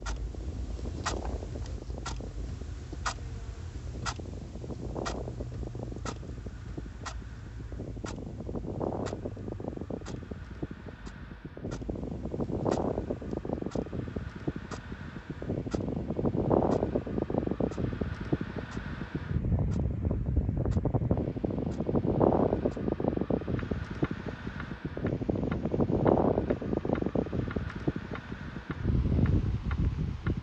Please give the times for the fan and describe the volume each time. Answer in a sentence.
You can hear the fan from 0.0 to 30.3 s, getting louder.